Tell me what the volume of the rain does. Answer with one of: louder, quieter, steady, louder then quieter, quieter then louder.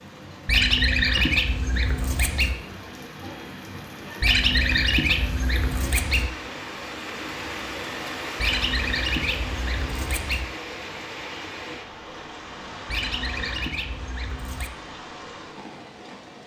louder then quieter.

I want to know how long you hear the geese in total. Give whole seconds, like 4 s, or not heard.
8 s.